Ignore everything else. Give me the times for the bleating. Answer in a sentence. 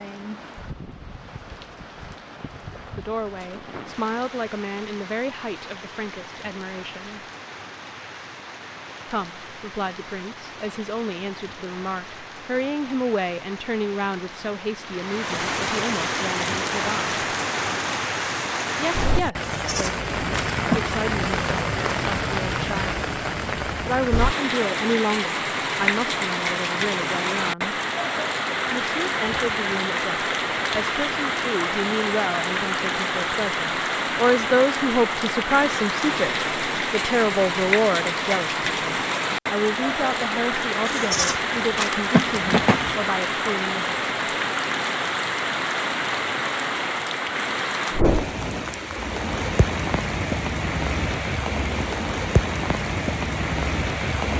You can hear the bleating from 19.4 to 20.9 s and from 40.9 to 43.0 s.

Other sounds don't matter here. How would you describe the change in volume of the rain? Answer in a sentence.
The volume of the rain goes up.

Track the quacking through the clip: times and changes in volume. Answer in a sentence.
You can't hear the quacking here.